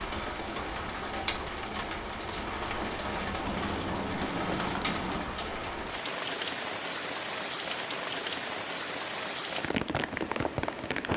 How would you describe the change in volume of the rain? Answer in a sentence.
The loudness of the rain stays about the same.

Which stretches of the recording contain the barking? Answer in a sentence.
The barking can't be heard in this clip.